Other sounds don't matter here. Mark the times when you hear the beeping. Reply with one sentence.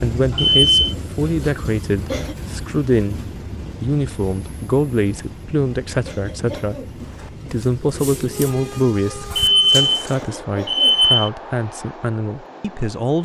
The beeping can be heard from 0.3 to 0.9 s and from 9.3 to 11.3 s.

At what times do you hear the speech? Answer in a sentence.
You can hear the speech from 0.0 to 3.2 s, from 3.8 to 6.8 s and from 7.5 to 13.2 s.